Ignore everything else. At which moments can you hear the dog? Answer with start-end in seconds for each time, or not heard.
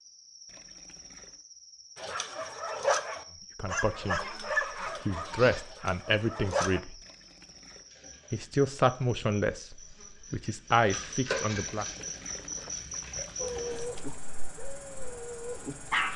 1.9-6.8, 13.4-16.1.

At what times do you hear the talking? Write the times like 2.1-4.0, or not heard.
3.5-4.4, 5.0-7.0, 8.3-11.8.